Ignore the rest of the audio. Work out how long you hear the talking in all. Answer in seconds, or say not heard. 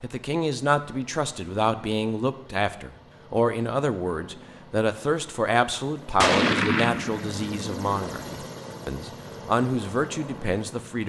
11 s.